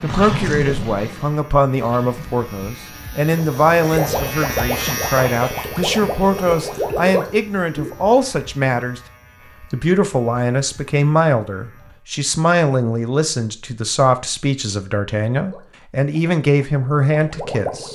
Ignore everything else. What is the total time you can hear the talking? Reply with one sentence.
You can hear the talking for 17 seconds altogether.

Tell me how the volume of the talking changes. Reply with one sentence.
The volume of the talking stays about the same.